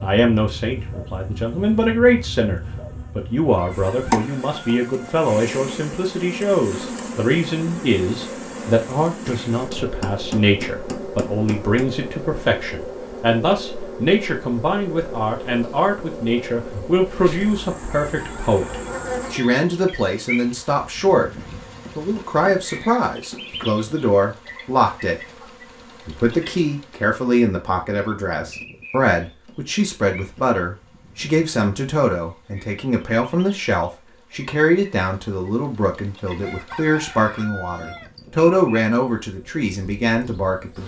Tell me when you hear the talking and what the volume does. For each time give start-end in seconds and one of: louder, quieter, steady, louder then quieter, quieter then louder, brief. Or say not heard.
0.0-40.8 steady.